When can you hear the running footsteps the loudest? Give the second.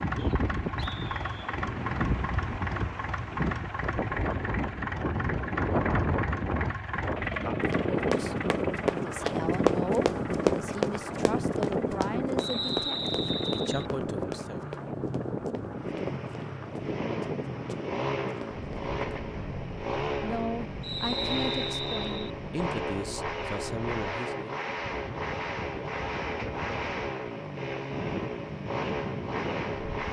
10 s.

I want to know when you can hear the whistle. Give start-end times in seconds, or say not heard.
0.1-1.6, 12.3-13.8, 20.8-22.3.